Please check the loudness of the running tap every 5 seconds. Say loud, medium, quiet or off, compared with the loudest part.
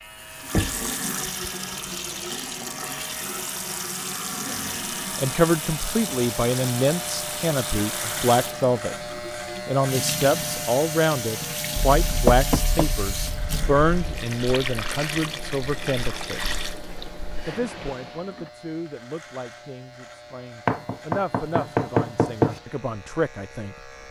loud, loud, loud, loud, off.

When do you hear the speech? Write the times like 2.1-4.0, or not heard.
4.5-8.9, 9.7-16.6, 17.4-24.0.